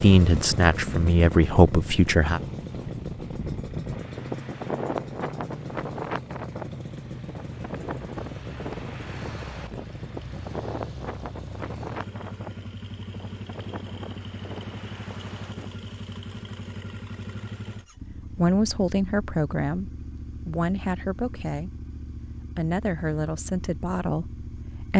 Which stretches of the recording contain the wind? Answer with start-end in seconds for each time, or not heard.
0.0-15.7.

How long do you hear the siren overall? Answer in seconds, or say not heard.
not heard.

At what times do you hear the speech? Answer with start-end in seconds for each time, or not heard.
0.0-2.4, 18.1-21.9, 22.6-24.9.